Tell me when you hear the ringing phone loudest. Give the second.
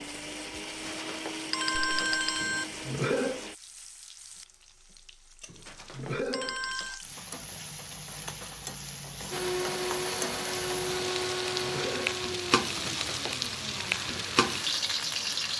2 s.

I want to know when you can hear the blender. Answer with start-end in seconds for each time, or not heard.
0.0-3.5, 9.3-15.5.